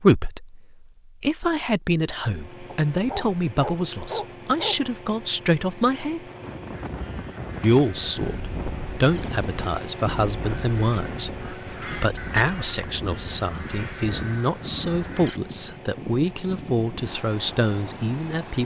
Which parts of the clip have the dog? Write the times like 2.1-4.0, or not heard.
2.6-4.8.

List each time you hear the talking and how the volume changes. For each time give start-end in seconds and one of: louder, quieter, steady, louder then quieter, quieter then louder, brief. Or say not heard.
0.0-0.6 brief
1.2-6.2 steady
7.6-18.6 steady.